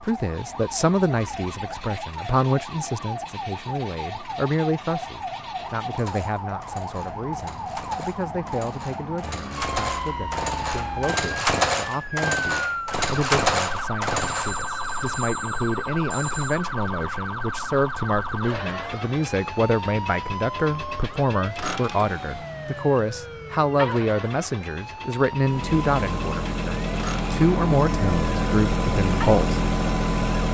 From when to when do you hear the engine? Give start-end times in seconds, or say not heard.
0.0-14.6, 25.4-30.4.